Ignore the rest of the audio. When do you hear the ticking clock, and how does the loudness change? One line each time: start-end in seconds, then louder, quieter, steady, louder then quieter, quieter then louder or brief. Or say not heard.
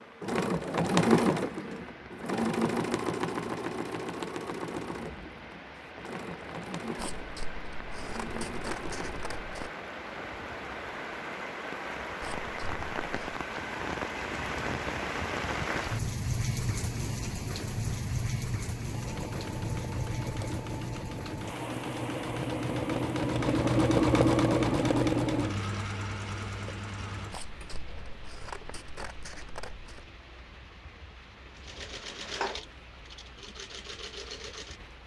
not heard.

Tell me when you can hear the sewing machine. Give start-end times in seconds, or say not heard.
0.0-9.4, 18.9-27.8, 31.6-35.0.